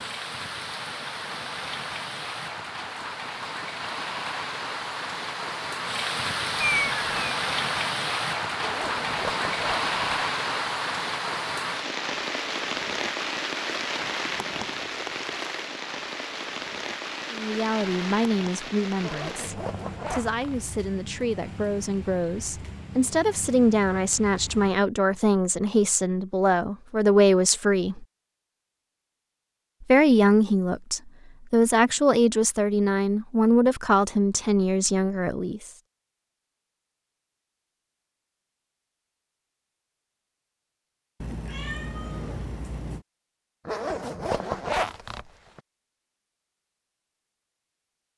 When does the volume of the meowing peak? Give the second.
7 s.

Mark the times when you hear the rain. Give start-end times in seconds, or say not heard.
0.0-24.8.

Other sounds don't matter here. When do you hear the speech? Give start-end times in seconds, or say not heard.
17.3-28.1, 29.8-35.7.